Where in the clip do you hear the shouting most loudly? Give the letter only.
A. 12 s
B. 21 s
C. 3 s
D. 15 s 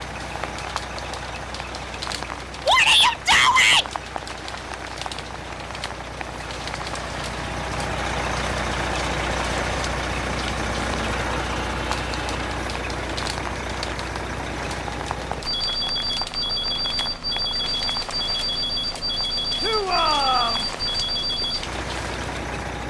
C.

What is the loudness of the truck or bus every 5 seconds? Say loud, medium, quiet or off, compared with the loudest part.
medium, loud, loud, loud, loud.